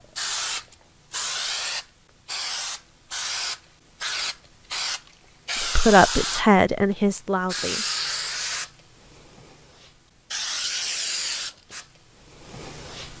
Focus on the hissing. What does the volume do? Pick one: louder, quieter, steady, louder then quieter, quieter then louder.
steady.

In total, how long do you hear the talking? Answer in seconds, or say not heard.
2 s.